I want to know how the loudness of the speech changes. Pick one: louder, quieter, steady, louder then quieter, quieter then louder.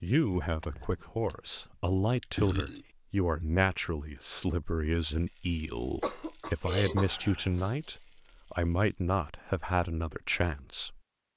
steady.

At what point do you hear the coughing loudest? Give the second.
6 s.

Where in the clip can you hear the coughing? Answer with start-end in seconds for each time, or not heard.
0.4-1.2, 6.0-7.8.